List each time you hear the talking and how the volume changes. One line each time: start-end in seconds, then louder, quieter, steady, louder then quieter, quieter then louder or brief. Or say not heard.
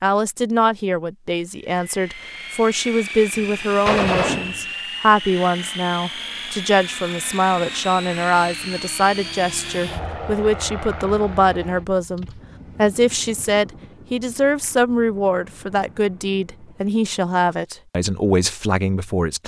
0.0-19.4 steady.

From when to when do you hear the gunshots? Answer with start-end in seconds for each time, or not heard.
3.3-4.7.